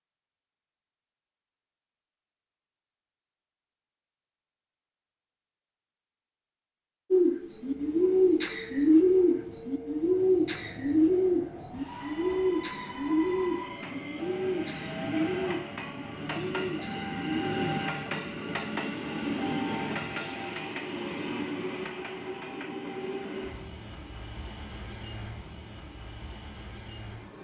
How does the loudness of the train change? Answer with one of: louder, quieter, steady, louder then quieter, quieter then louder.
louder then quieter.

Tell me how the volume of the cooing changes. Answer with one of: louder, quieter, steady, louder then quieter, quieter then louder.
quieter.